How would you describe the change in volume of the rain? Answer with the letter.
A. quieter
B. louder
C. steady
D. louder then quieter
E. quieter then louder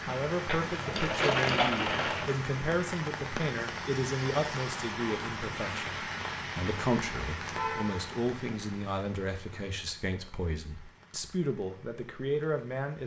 A.